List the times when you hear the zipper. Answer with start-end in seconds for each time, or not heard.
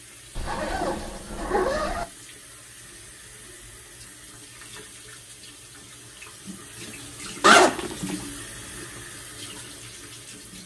0.3-2.0, 7.4-8.2.